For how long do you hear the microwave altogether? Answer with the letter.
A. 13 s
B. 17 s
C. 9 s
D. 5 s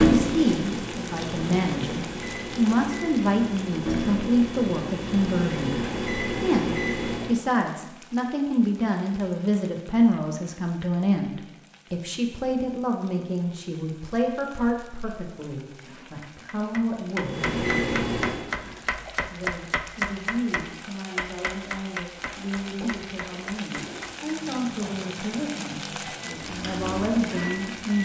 A.